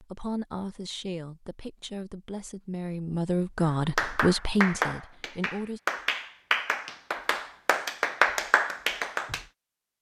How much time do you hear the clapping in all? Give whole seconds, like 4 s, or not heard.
6 s.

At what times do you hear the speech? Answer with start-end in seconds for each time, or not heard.
0.0-5.8.